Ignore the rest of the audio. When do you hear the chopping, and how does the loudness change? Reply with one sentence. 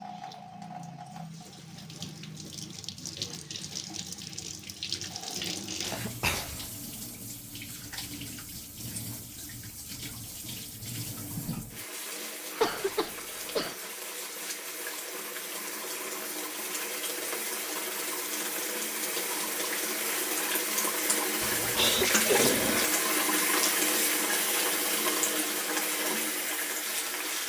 The chopping can't be heard in this clip.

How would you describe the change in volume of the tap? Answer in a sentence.
The volume of the tap goes up.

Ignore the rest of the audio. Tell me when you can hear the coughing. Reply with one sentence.
The coughing can be heard from 5.8 to 6.7 s, from 12.6 to 13.8 s and from 21.4 to 22.9 s.